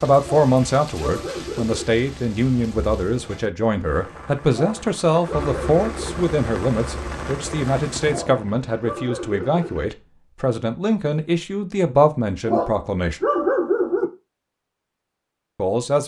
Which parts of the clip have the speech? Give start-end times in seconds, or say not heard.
0.0-13.2, 15.6-16.0.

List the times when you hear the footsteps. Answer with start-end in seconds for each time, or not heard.
not heard.